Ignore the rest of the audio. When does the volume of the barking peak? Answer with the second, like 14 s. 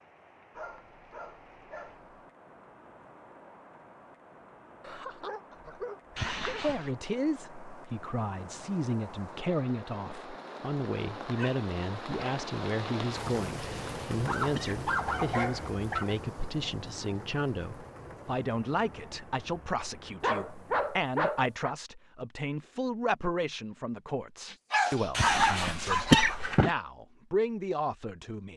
25 s.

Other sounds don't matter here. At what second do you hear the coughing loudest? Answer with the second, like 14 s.
26 s.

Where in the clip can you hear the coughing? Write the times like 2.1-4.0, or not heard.
6.2-7.0, 13.6-14.8, 25.1-26.7.